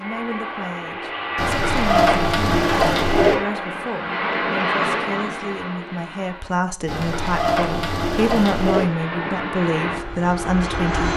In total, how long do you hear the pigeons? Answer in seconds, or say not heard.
4 s.